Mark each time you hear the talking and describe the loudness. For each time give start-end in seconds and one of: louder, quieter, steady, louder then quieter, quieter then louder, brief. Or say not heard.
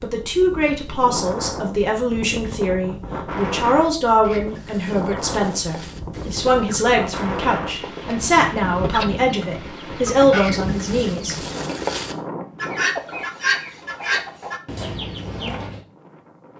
0.0-11.8 steady.